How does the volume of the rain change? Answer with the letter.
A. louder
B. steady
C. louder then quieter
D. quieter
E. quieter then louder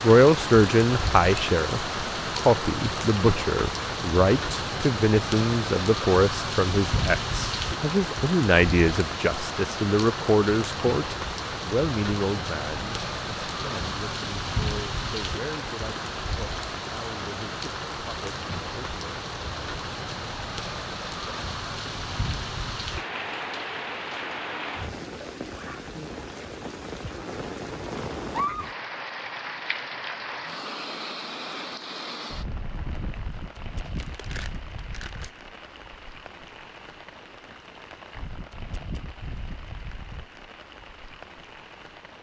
D.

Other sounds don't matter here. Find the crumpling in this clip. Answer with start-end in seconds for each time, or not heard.
33.9-35.4.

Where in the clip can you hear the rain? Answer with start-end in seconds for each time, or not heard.
0.0-42.1.